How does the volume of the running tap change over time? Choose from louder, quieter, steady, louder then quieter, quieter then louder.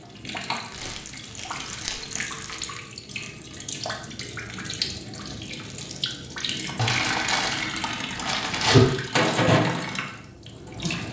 louder.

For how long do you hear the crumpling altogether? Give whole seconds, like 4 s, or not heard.
4 s.